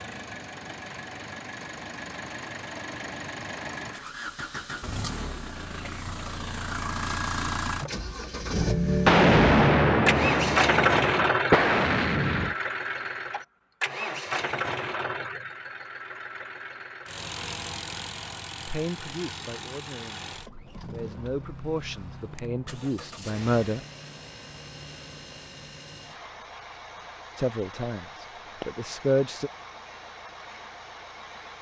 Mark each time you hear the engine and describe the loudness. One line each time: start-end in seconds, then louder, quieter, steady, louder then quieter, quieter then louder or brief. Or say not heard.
0.0-31.5 louder then quieter.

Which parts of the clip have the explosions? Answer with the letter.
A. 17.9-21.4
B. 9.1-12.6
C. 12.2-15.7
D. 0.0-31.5
B.